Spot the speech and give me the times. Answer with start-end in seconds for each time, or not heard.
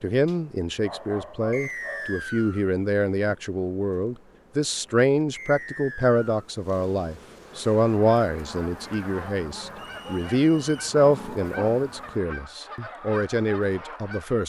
0.0-14.4.